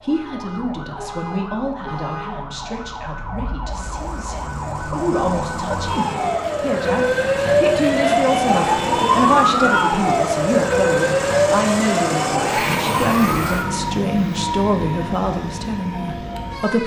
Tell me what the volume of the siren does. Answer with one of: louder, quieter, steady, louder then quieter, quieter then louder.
louder then quieter.